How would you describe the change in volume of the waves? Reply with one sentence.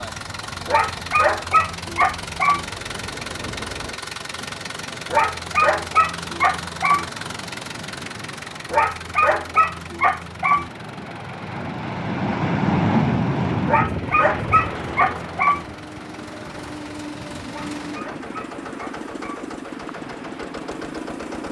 The loudness of the waves goes up, then down.